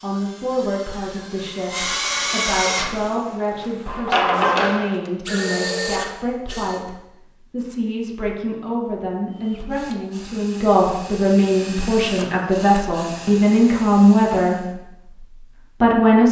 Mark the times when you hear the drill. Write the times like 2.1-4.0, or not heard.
0.0-6.8, 9.3-14.8.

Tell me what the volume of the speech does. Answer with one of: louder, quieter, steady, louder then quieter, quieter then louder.
louder.